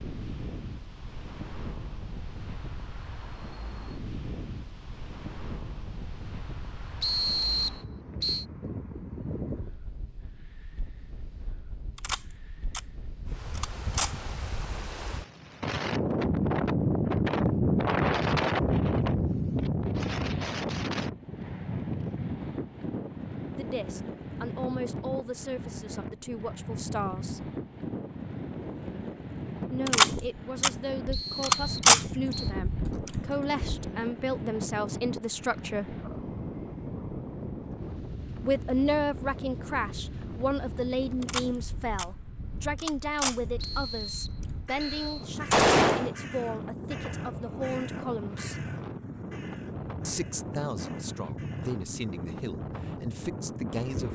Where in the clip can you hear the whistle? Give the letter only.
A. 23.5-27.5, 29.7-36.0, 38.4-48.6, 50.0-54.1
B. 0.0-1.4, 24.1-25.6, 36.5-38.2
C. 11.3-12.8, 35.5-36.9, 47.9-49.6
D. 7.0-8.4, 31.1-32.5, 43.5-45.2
D.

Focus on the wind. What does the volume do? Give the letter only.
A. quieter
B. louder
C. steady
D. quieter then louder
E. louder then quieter
E.